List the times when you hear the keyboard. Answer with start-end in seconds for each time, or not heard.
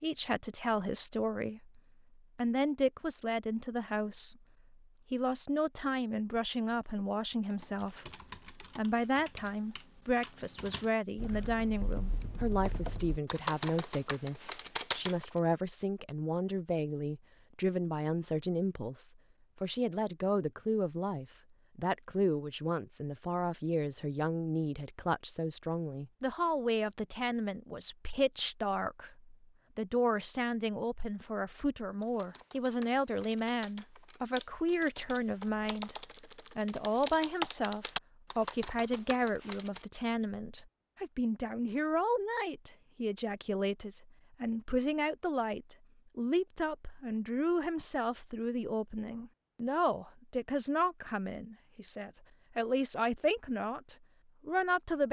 7.5-15.2, 32.0-39.9.